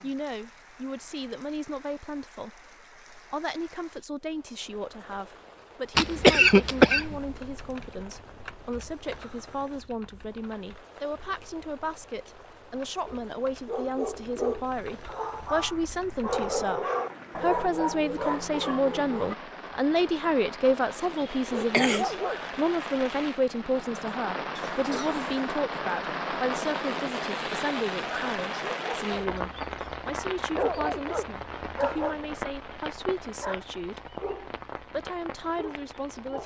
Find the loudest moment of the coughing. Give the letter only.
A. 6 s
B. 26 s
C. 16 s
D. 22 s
A.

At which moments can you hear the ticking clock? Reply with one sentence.
You can't hear the ticking clock here.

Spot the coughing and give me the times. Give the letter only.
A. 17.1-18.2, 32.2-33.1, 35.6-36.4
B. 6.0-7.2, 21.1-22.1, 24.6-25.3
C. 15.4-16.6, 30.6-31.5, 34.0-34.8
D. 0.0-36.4
B.